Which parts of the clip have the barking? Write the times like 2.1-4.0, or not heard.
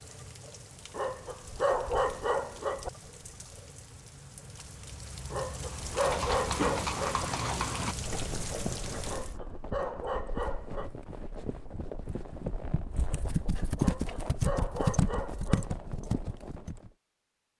0.9-2.9, 5.3-7.2, 9.1-10.9, 13.8-15.8.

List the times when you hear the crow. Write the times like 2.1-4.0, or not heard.
not heard.